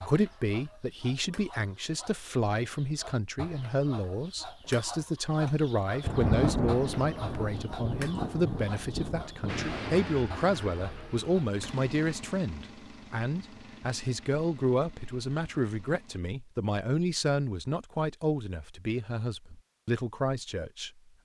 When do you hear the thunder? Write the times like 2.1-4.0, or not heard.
6.0-10.1.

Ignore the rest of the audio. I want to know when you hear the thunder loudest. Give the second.
6 s.